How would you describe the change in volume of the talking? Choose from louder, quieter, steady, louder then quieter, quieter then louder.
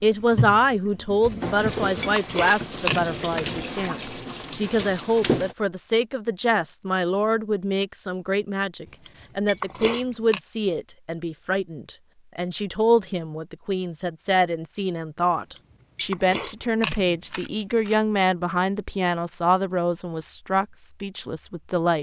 steady.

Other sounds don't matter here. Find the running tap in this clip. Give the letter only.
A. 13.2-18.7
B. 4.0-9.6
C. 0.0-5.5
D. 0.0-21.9
C.